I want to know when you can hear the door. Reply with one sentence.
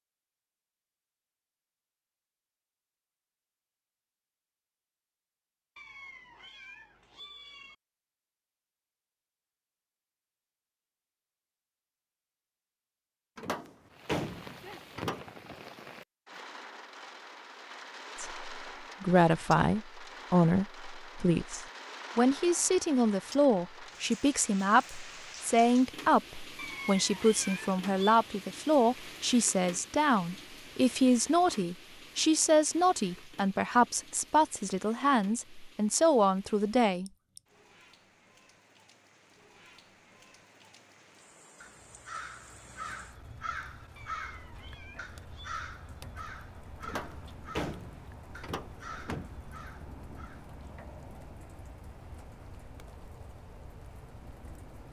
The door can be heard from 13.3 to 15.2 s and from 46.8 to 49.3 s.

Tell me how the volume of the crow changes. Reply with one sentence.
The loudness of the crow goes down.